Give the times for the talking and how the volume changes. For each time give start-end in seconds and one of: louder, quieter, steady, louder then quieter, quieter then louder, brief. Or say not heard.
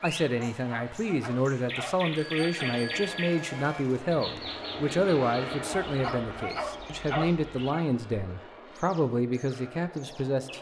0.0-10.5 steady.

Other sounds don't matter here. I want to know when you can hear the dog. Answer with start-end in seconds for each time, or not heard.
0.3-2.8, 5.8-7.8.